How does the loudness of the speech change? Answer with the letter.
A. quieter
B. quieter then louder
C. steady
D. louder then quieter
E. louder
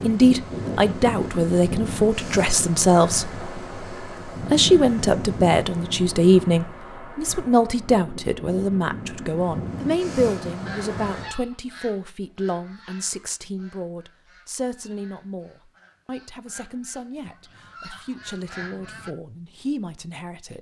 A.